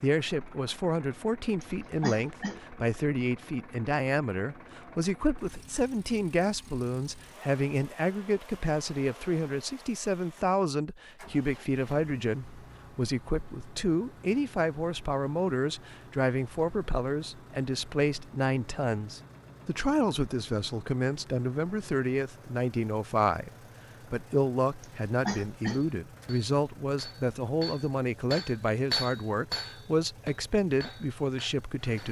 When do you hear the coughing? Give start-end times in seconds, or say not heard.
1.6-2.6, 24.8-25.9.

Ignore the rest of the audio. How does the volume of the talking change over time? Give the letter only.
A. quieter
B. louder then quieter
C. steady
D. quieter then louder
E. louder
C.